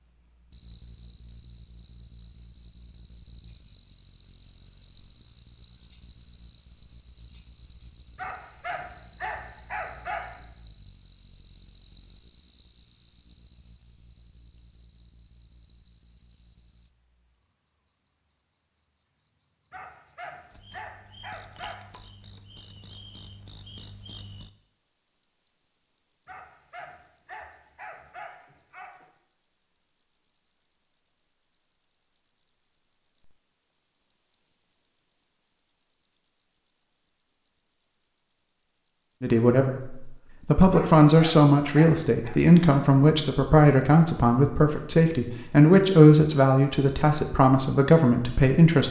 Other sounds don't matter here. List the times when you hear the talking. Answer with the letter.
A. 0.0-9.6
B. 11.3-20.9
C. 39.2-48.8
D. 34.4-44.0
C.